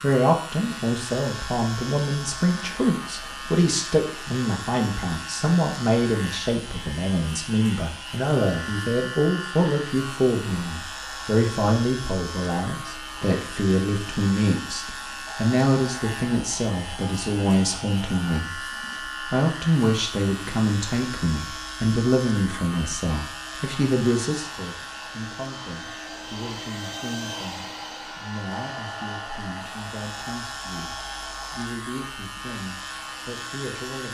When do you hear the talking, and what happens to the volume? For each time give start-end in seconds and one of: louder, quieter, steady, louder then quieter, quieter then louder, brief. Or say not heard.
0.0-34.1 quieter.